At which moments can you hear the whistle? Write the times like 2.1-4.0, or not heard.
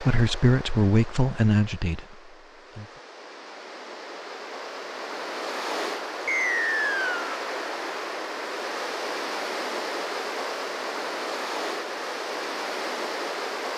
6.2-7.2.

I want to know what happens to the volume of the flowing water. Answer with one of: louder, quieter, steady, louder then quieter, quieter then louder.
louder.